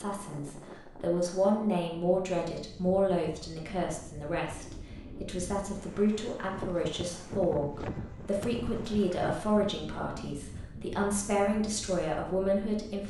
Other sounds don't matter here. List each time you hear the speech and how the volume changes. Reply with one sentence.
The speech can be heard from 0.0 to 13.0 s, at a steady volume.